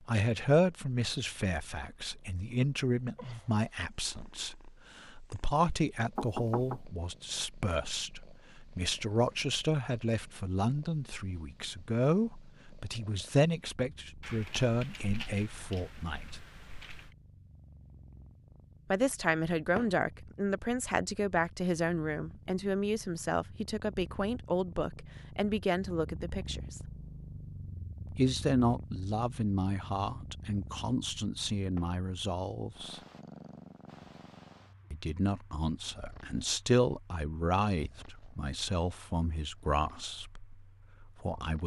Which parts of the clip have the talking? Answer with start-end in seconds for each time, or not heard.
0.1-16.4, 18.9-26.8, 28.1-33.0, 34.9-41.6.